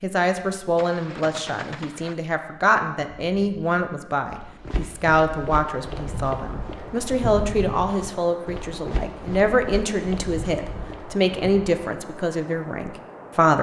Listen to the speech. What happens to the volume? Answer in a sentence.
The volume of the speech stays about the same.